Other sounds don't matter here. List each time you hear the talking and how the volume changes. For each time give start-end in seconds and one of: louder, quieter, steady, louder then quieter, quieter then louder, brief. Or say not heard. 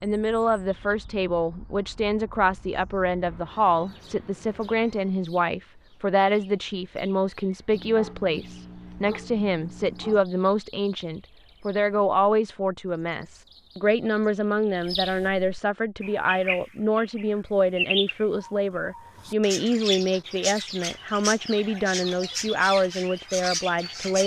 0.0-24.2 steady.